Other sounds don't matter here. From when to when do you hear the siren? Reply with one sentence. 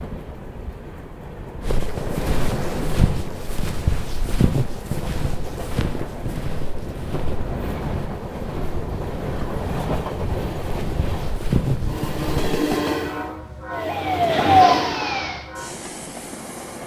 You can hear the siren from 13.7 to 15.4 s.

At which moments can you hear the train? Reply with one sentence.
You can hear the train from 0.0 to 16.8 s.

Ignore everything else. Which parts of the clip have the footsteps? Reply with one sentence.
The footsteps can be heard from 1.6 to 12.5 s.